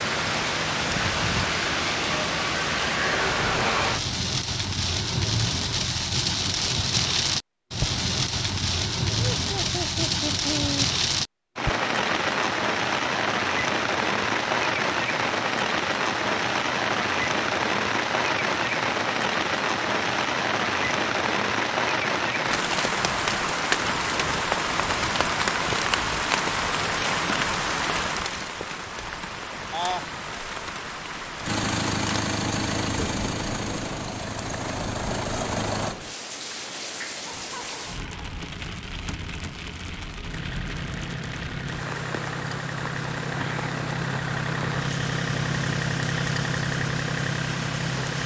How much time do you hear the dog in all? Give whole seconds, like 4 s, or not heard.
not heard.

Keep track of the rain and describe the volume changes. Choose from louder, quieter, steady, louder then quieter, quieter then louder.
quieter.